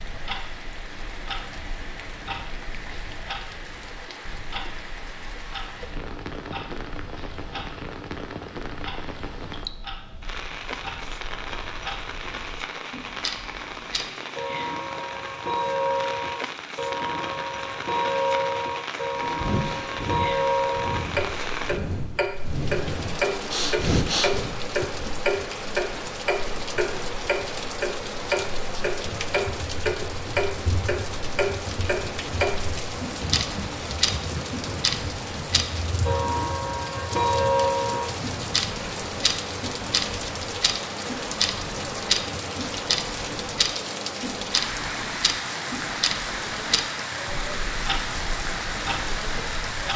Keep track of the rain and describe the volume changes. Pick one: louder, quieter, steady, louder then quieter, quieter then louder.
louder.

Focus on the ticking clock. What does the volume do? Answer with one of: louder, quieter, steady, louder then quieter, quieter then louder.
louder.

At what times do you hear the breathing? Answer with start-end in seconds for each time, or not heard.
19.2-24.5.